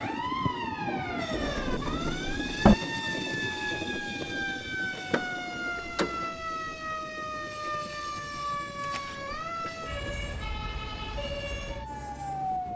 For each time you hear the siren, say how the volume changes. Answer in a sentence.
You can hear the siren from 0.0 to 12.7 s, at a steady volume.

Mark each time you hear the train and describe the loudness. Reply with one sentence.
The train can be heard from 0.0 to 12.7 s, getting quieter.